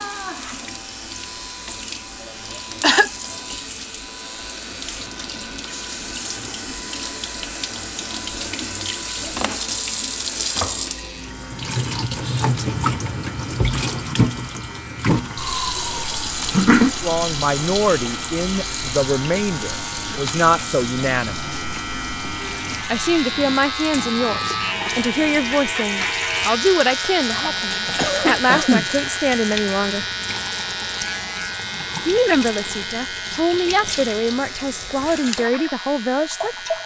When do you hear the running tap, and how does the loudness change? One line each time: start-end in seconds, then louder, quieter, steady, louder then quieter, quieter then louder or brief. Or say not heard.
0.0-36.8 louder then quieter.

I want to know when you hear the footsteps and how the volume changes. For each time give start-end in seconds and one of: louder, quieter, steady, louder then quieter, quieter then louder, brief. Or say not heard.
not heard.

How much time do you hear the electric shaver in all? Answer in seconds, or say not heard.
37 s.